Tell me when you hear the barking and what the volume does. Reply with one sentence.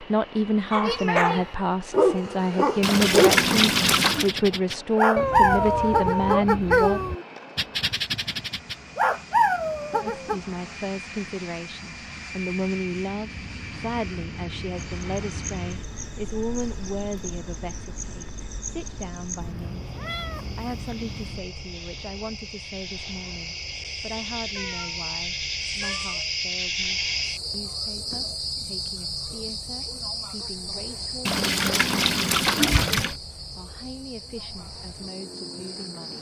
The barking can be heard from 0.7 to 10.4 s, at a steady volume.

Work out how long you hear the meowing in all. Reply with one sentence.
You can hear the meowing for 6 seconds altogether.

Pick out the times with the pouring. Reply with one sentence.
The pouring can be heard from 2.8 to 4.3 s and from 31.2 to 33.1 s.